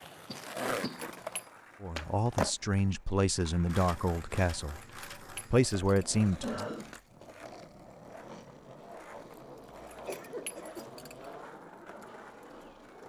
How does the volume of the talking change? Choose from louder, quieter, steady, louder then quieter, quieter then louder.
quieter then louder.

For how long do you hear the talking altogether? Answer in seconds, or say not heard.
5 s.